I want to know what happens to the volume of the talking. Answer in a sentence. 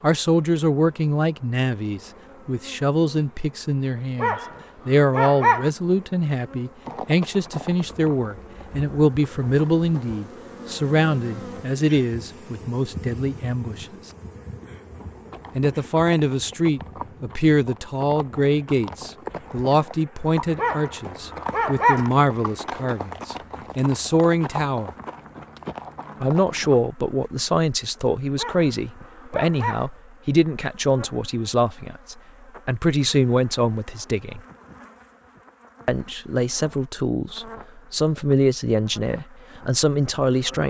The volume of the talking stays about the same.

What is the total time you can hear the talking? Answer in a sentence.
You can hear the talking for 36 seconds altogether.